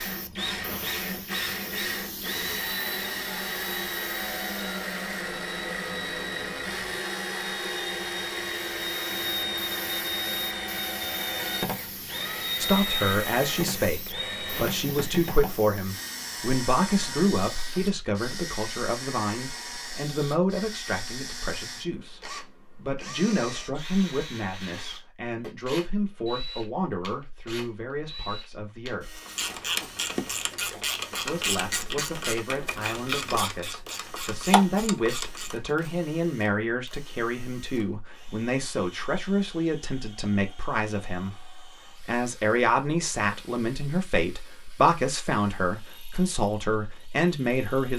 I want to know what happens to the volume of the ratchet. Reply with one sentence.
The loudness of the ratchet stays about the same.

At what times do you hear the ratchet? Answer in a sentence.
You can hear the ratchet from 29.1 to 35.7 s.